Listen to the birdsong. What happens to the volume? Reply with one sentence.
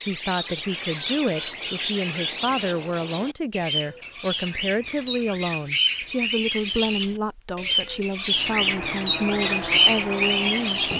The loudness of the birdsong goes up.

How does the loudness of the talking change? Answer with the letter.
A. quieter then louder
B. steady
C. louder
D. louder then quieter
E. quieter
B.